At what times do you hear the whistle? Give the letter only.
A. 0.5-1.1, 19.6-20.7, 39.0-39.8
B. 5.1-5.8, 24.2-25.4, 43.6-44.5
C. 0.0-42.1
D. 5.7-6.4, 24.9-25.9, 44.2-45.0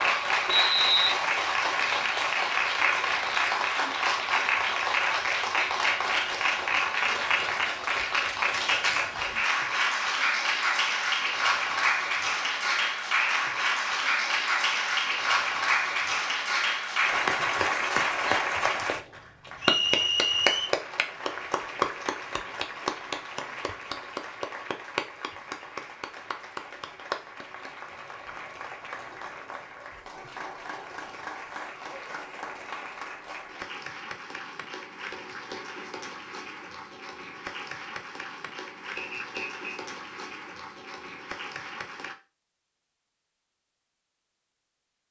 A.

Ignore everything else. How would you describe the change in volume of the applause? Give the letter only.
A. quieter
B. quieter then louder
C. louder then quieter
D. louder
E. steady
A.